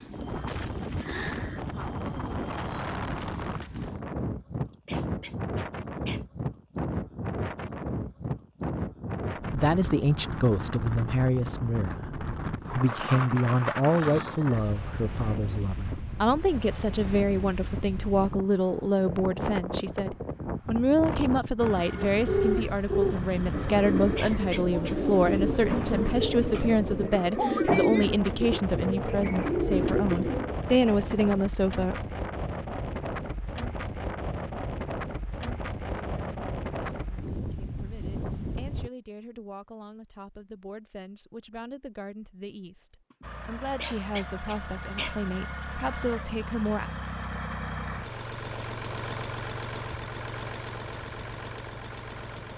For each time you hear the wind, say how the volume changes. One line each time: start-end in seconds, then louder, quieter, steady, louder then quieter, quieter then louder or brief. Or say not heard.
0.0-38.9 steady.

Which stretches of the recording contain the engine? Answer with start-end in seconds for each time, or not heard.
21.6-26.1, 43.2-52.5.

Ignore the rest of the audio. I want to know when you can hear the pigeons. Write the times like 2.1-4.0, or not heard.
22.1-30.6.